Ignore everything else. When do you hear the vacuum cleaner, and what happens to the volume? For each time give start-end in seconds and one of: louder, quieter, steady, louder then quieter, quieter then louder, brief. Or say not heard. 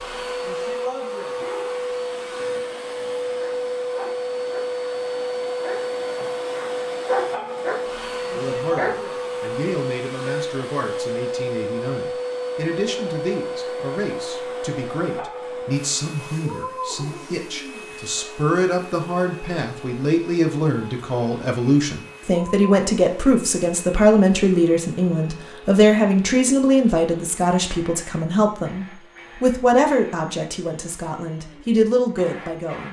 0.0-32.8 quieter.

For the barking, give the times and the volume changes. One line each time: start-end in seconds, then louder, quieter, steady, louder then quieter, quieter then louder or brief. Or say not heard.
1.3-9.3 louder.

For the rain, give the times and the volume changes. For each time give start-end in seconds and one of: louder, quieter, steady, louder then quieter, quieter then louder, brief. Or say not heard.
not heard.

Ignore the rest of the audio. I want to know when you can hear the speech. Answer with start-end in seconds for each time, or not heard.
8.3-32.8.